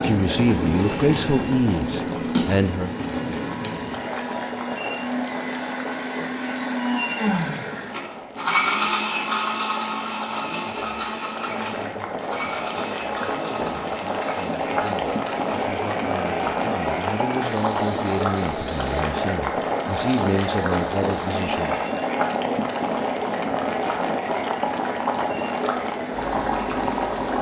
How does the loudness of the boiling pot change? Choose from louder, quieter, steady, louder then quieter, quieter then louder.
quieter then louder.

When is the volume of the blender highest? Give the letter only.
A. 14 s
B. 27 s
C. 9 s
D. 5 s
C.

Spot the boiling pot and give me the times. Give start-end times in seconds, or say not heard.
0.0-27.3.